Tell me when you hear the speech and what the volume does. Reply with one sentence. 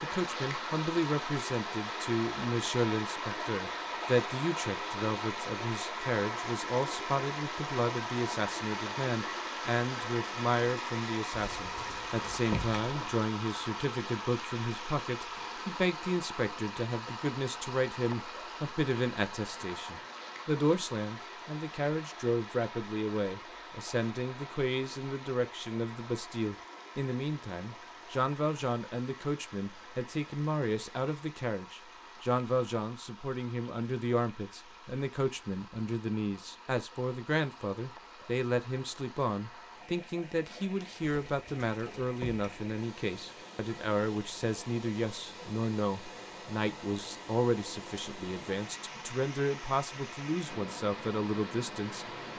The speech can be heard from 0.0 to 52.0 s, at a steady volume.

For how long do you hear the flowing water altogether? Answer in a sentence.
The flowing water can be heard for 52 seconds in total.